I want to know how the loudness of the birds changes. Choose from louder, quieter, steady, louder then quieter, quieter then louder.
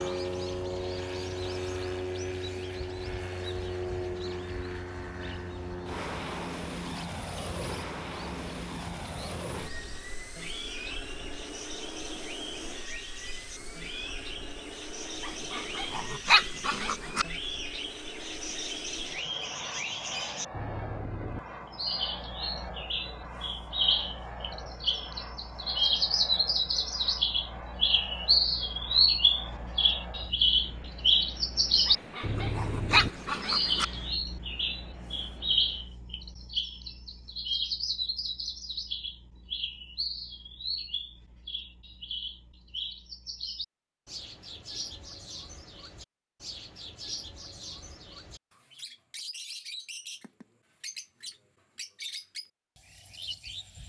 louder then quieter.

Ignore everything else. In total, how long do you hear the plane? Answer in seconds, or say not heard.
36 s.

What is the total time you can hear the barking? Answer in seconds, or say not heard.
4 s.